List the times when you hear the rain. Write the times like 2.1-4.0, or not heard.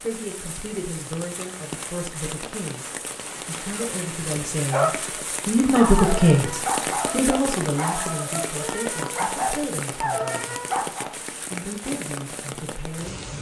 0.0-13.3.